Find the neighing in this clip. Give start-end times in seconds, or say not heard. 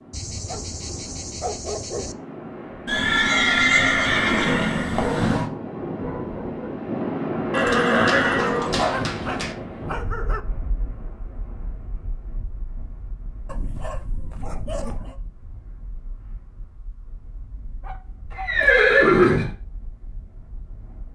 2.9-5.5, 7.5-9.6, 18.4-19.5.